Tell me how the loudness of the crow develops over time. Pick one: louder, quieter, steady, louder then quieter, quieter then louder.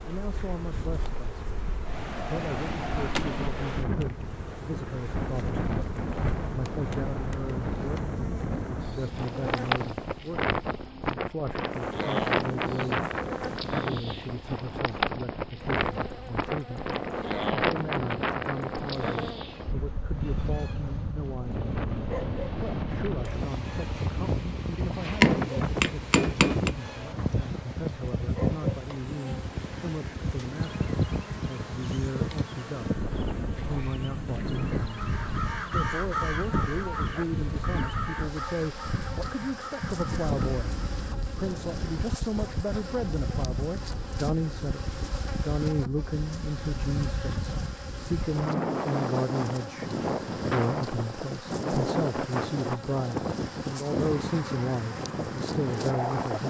quieter.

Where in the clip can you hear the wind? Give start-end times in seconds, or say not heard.
0.0-56.4.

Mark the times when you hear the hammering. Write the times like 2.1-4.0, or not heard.
25.2-26.8.